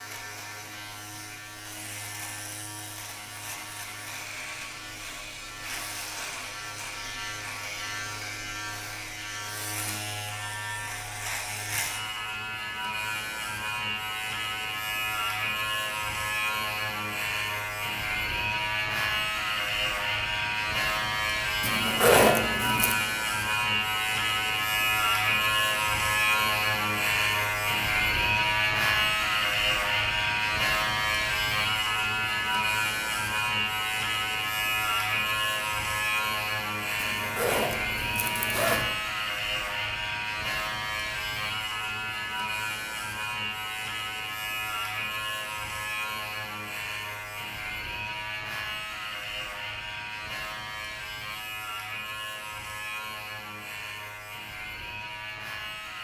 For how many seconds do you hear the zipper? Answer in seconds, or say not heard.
3 s.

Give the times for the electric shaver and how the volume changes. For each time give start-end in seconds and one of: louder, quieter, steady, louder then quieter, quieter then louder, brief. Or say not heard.
0.0-55.9 louder then quieter.